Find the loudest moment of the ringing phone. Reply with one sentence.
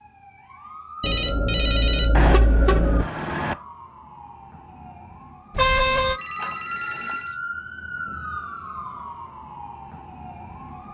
The loudest moment of the ringing phone is at 2 seconds.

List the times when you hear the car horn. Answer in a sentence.
You can hear the car horn from 2.1 to 3.5 s and from 5.5 to 6.2 s.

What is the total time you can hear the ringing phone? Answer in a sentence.
You can hear the ringing phone for 3 seconds altogether.